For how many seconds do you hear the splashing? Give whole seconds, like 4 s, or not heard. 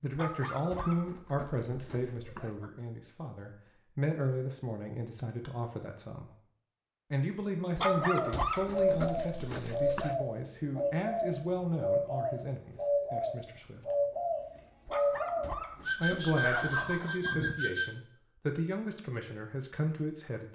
not heard.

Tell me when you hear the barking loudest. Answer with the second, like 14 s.
8 s.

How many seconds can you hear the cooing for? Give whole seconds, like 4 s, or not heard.
10 s.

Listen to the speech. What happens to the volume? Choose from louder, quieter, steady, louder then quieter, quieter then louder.
steady.